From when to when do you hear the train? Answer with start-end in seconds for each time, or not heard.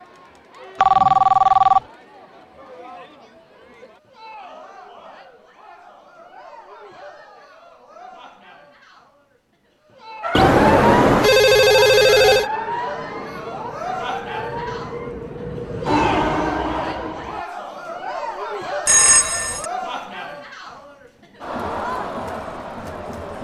12.1-17.4.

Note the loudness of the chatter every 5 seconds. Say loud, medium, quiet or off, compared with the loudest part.
quiet, quiet, loud, loud, loud.